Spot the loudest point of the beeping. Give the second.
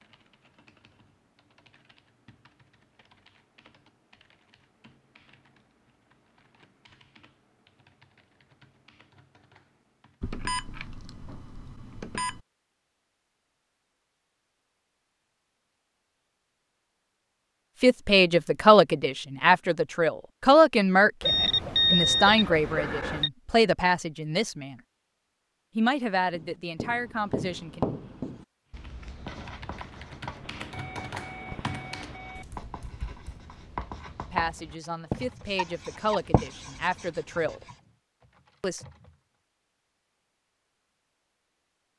22 s.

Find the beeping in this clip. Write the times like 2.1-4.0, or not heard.
10.2-12.4, 21.2-23.3, 30.4-32.5.